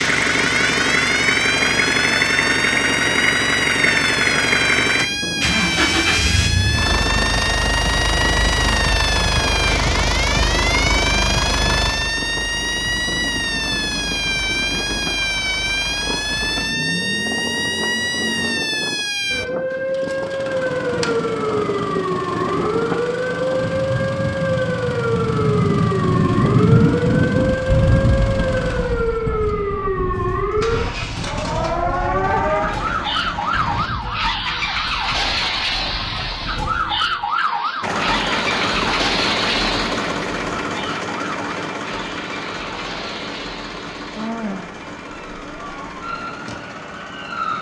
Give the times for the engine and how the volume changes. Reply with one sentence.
The engine can be heard from 0.0 to 33.9 s, getting quieter; and from 37.8 to 47.5 s, getting quieter.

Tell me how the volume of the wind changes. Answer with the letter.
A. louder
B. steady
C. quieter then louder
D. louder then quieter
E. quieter
D.